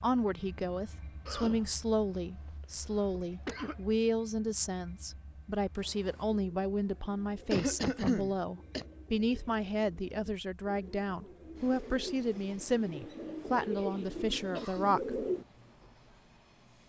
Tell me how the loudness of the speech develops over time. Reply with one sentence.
The loudness of the speech stays about the same.